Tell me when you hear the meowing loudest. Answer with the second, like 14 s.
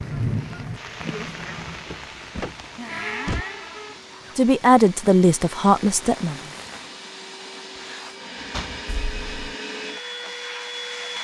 1 s.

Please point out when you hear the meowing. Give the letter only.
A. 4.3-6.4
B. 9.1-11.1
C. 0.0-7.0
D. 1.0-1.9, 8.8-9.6
D.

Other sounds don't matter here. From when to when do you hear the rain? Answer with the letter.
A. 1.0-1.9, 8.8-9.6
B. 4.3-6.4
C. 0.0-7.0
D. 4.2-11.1
C.